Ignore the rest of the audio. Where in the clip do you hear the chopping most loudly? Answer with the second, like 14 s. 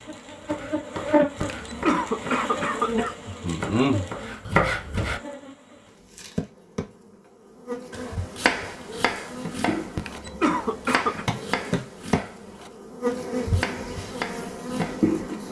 5 s.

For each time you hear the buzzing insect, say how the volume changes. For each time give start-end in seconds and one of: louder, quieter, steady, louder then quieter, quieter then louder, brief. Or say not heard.
0.1-15.4 quieter then louder.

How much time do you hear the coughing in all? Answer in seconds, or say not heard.
3 s.